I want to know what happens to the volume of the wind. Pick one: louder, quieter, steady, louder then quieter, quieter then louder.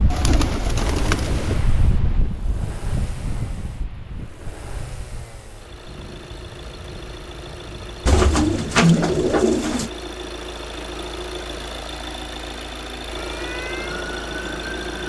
quieter.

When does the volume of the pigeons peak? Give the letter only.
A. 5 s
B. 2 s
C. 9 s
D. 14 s
C.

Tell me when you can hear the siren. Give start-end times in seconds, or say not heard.
13.2-15.0.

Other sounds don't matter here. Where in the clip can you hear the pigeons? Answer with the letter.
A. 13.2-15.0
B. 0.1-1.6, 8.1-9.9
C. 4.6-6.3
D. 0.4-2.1
B.